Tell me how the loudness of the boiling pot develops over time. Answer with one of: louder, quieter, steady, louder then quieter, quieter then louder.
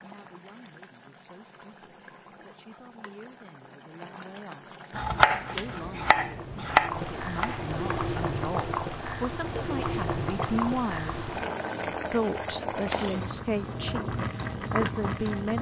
louder.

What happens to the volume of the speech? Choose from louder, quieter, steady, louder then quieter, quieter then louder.
louder.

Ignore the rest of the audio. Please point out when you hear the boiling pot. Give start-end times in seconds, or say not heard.
0.0-15.5.